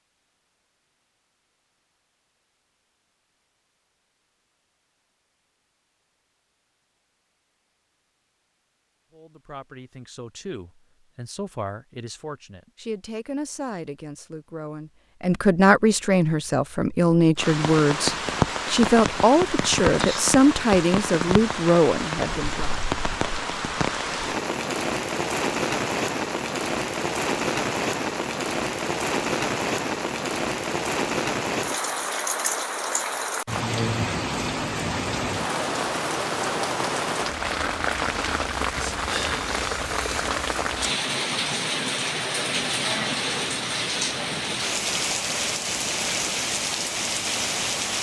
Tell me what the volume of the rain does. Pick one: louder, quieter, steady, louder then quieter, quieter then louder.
steady.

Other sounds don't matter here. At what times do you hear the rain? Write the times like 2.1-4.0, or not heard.
17.4-47.9.